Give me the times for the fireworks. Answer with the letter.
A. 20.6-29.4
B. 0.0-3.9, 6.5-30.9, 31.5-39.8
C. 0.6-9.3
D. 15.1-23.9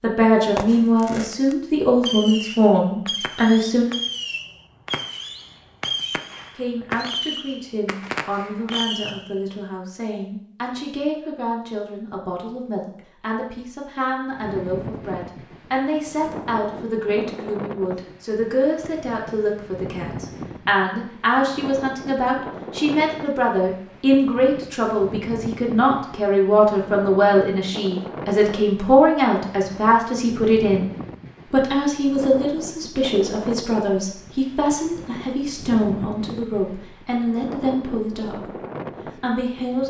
C.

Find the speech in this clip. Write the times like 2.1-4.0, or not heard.
0.0-3.9, 6.5-30.9, 31.5-39.8.